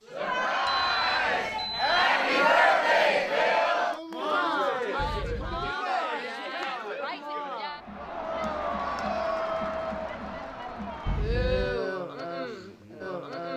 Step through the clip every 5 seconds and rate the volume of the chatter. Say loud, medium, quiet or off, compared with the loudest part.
loud, medium, medium.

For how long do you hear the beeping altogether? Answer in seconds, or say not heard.
3 s.